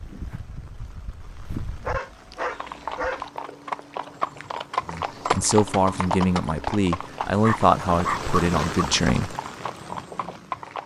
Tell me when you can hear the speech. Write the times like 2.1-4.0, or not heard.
4.8-9.3.